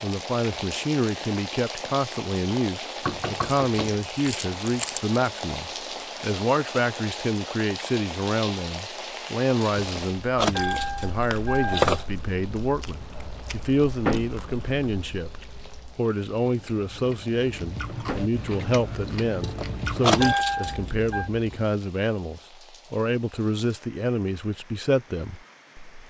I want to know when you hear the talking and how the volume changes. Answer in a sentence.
The talking can be heard from 0.0 to 26.0 s, at a steady volume.